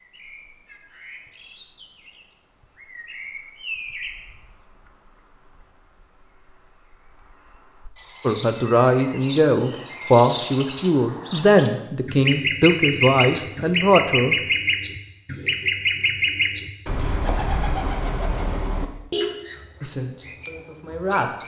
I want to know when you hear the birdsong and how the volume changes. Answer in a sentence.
You can hear the birdsong from 0.0 to 19.6 s, getting quieter then louder; and briefly from 20.2 to 21.4 s.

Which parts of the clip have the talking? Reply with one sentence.
You can hear the talking from 8.2 to 14.3 s and from 19.8 to 21.3 s.